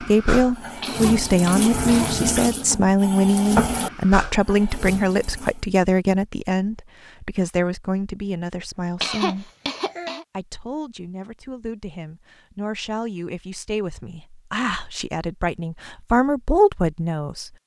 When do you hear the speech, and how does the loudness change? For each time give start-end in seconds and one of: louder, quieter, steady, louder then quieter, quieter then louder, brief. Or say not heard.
0.0-9.5 quieter
10.3-17.5 louder.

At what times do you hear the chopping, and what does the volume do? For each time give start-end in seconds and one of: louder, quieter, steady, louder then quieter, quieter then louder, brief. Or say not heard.
not heard.